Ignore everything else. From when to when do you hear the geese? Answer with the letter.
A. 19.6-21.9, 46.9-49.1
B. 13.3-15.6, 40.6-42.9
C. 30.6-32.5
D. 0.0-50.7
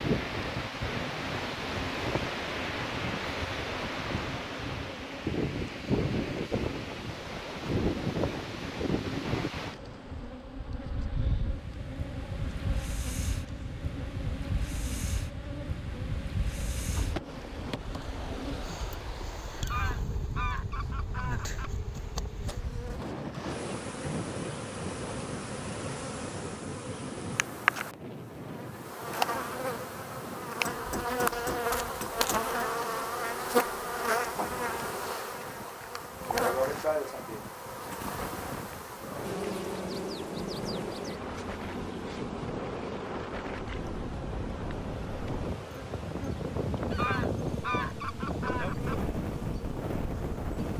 A.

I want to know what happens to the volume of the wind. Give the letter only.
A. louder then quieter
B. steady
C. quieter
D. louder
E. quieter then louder
E.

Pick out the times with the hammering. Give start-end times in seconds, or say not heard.
30.6-32.5.